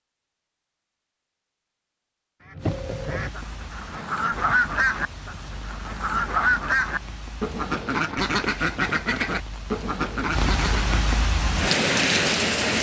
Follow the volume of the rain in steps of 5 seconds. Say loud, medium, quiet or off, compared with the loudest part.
quiet, quiet, loud.